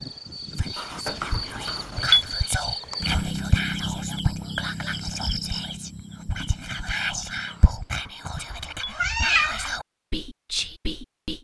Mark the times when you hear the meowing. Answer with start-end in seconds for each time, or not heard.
1.1-2.2, 8.5-9.8.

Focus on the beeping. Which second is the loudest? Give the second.
2 s.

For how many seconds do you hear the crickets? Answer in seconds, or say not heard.
8 s.